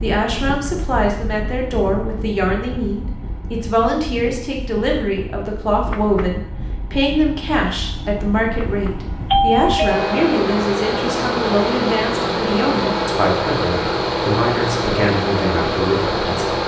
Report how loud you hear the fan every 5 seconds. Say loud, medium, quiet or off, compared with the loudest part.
quiet, quiet, loud, loud.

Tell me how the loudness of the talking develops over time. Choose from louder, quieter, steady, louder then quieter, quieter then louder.
steady.